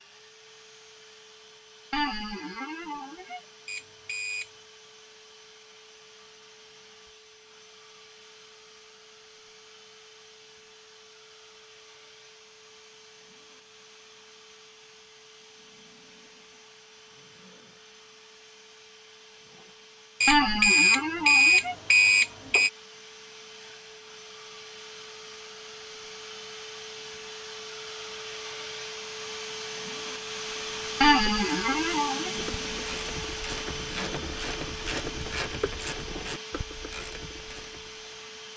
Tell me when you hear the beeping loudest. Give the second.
21 s.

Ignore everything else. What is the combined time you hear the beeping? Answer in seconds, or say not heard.
3 s.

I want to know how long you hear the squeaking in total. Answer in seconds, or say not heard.
4 s.